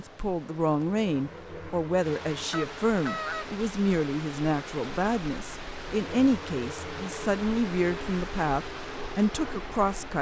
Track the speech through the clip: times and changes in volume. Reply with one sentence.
You can hear the speech from 0.0 to 10.1 s, at a steady volume.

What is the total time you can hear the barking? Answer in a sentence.
The barking can't be heard in this clip.